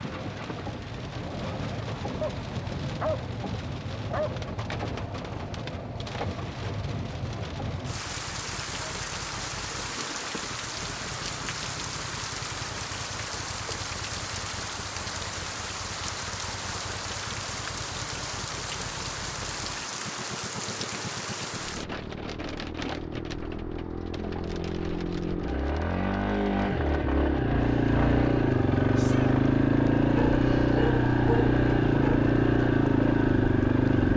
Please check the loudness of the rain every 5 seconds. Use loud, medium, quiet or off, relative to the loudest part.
loud, loud, loud, loud, loud, quiet, quiet.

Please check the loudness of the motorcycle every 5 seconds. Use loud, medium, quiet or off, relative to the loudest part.
quiet, quiet, quiet, quiet, quiet, loud, loud.